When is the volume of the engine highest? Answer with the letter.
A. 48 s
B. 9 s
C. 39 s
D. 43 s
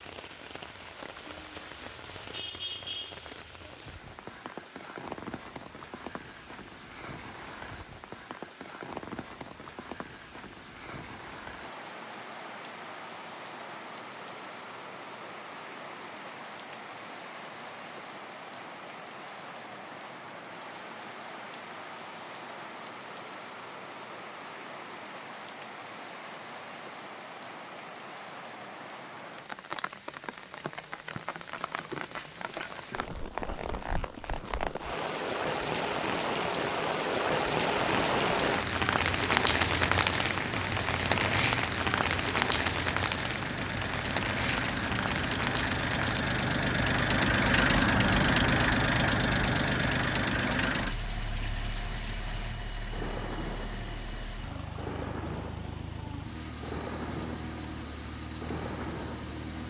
A.